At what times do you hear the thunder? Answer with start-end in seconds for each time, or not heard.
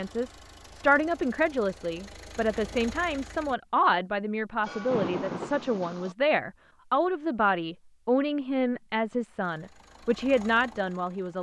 4.6-6.2.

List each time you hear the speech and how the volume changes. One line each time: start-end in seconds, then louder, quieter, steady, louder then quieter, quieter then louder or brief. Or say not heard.
0.0-11.3 steady.